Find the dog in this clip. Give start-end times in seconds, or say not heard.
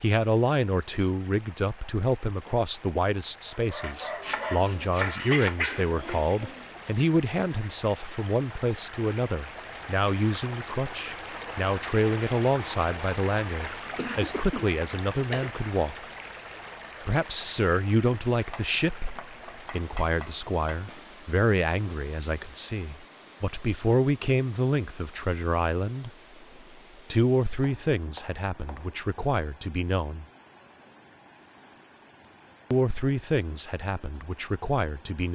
3.5-7.0.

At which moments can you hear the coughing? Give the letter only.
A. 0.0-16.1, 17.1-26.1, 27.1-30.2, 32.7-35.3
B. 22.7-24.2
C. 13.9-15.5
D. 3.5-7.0
C.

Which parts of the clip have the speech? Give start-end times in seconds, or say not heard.
0.0-16.1, 17.1-26.1, 27.1-30.2, 32.7-35.3.